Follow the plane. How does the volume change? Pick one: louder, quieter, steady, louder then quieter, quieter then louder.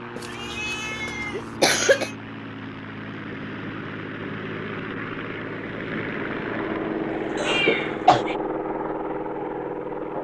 louder.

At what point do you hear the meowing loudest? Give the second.
8 s.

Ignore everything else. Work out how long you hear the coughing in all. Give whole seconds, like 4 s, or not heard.
2 s.